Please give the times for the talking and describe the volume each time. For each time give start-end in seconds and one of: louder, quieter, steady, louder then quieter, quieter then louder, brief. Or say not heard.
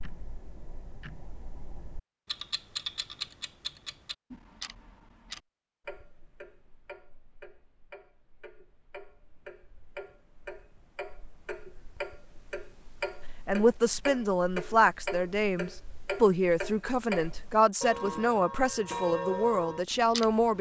13.4-20.5 steady.